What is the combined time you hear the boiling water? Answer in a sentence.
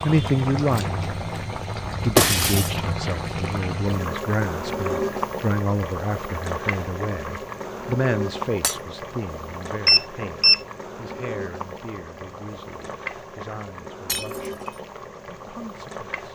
You can hear the boiling water for 16 seconds altogether.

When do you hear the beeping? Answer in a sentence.
The beeping can be heard from 9.8 to 10.6 s.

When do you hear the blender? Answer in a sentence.
You can't hear the blender here.